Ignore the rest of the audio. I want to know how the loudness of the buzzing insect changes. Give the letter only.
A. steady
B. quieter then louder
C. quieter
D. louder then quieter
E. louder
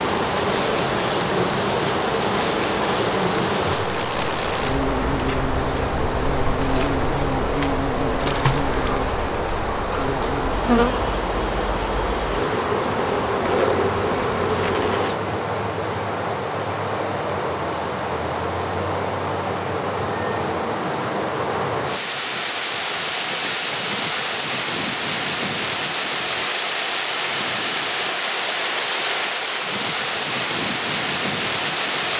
A.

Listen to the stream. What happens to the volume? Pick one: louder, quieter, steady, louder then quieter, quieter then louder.
steady.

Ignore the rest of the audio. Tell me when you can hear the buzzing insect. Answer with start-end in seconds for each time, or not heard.
0.0-15.2.